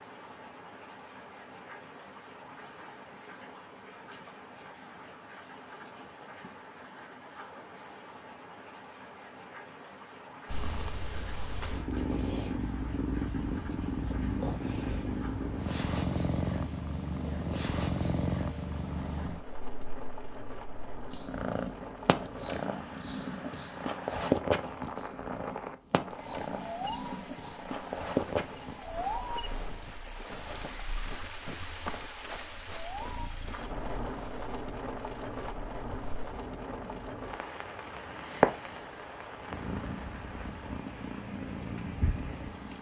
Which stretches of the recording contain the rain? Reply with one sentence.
The rain can be heard from 0.0 to 42.7 s.